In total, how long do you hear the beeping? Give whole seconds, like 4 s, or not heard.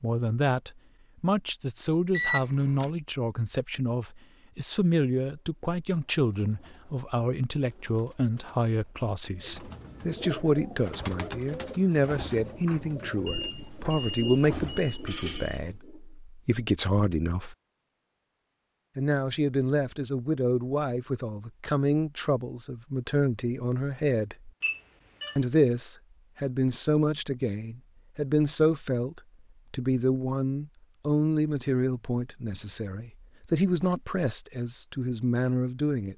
4 s.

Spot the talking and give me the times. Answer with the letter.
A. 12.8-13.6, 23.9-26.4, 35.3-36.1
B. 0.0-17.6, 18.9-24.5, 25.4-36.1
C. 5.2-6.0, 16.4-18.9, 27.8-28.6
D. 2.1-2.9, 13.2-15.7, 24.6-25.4
B.